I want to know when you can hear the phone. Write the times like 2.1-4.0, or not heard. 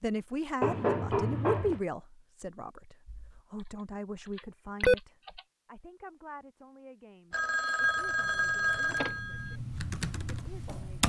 0.6-1.8, 7.3-9.6.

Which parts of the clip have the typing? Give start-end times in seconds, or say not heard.
3.0-5.4, 7.8-11.0.